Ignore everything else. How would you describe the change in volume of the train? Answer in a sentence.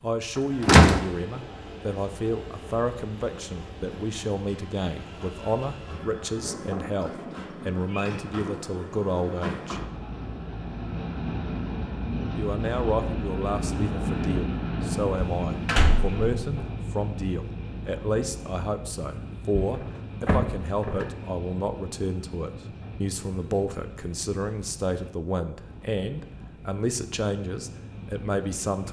The volume of the train goes up, then down.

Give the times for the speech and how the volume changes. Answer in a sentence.
You can hear the speech from 0.0 to 9.8 s, at a steady volume; and from 12.3 to 28.8 s, at a steady volume.